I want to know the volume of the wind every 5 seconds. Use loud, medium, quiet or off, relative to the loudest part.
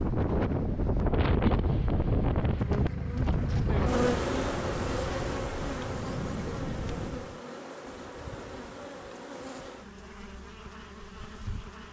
loud, medium, off.